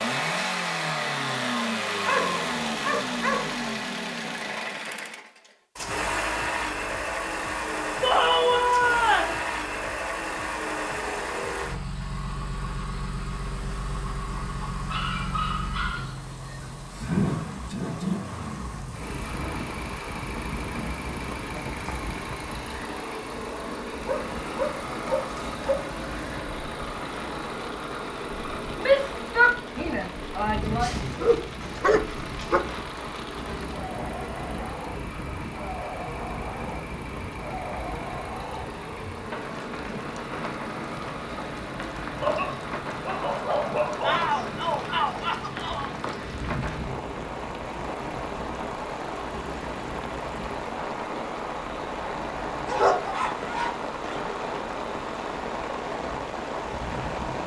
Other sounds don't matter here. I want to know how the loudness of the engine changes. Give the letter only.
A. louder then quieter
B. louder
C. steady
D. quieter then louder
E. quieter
E.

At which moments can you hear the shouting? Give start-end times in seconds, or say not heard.
8.0-9.3, 28.8-30.9, 44.0-46.0.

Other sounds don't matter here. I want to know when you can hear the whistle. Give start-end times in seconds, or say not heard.
not heard.